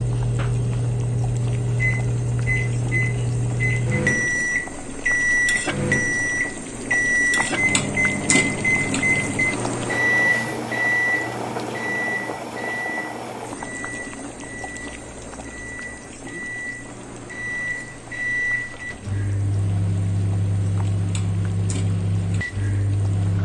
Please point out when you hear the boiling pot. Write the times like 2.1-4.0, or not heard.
0.0-23.3.